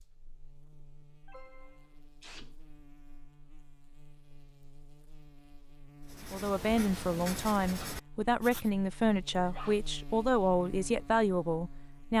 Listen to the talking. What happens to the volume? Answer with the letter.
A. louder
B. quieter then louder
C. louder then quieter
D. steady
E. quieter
D.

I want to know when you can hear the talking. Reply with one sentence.
The talking can be heard from 6.3 to 12.1 s.